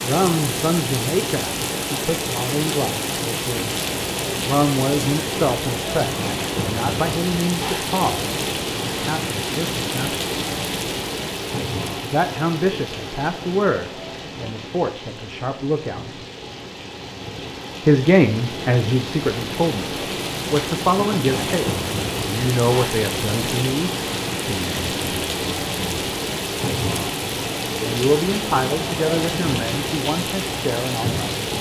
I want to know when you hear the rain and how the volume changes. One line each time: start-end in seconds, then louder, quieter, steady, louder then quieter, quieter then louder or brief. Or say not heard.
0.0-31.5 quieter then louder.